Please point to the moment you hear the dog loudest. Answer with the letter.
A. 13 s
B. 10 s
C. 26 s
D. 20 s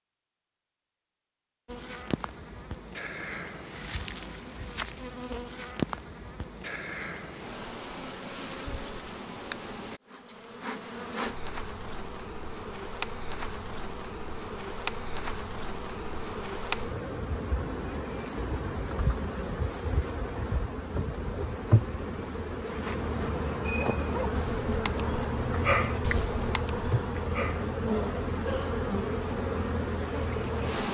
C.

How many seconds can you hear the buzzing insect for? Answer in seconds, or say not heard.
29 s.